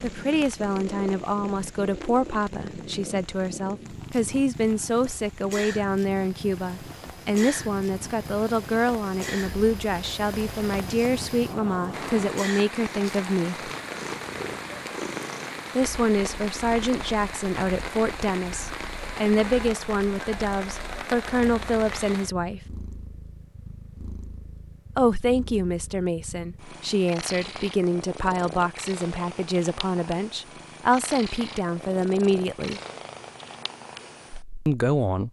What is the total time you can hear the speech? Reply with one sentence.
The speech can be heard for 29 seconds in total.